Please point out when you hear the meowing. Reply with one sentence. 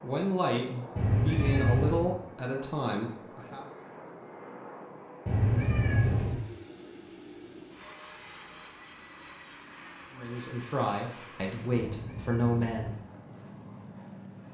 The meowing can be heard from 0.9 to 2.1 s, from 5.2 to 6.4 s and from 11.8 to 12.9 s.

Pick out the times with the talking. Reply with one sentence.
The talking can be heard from 0.0 to 3.6 s and from 10.1 to 12.9 s.